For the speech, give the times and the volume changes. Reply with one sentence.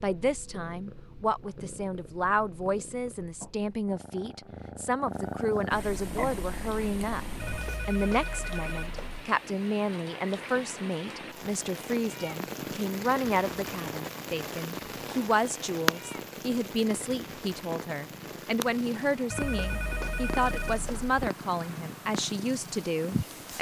The speech can be heard from 0.0 to 23.5 s, at a steady volume.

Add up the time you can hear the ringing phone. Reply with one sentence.
The ringing phone can be heard for 4 seconds in total.